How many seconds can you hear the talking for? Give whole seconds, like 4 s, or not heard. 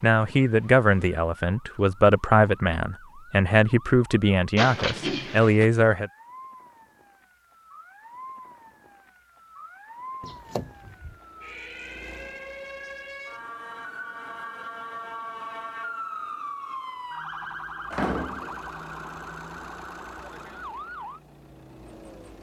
6 s.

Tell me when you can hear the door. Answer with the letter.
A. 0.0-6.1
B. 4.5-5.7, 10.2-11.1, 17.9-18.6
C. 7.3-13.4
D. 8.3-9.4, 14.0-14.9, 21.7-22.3
B.